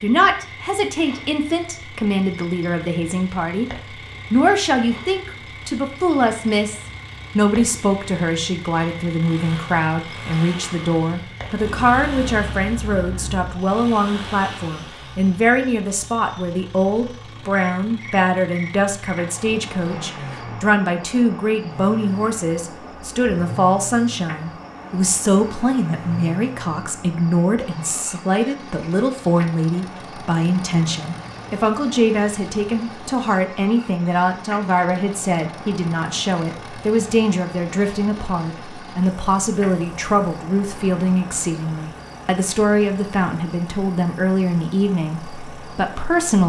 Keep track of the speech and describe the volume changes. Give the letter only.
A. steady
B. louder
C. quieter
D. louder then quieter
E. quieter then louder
A.